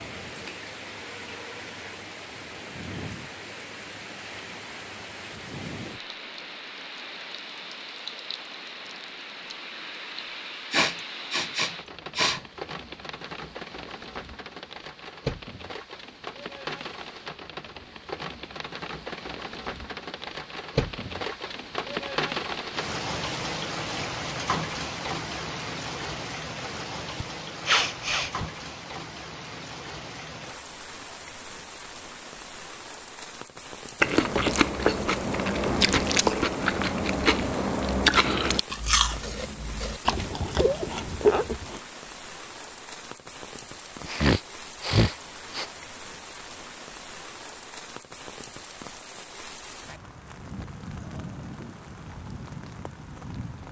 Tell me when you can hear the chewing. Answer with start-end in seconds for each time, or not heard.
34.0-41.8.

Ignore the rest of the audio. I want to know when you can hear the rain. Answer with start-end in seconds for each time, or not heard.
0.0-53.6.